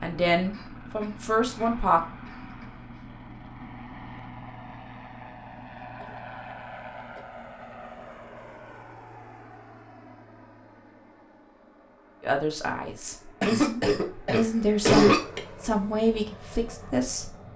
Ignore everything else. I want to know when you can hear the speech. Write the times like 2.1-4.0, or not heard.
0.0-2.0, 12.2-17.3.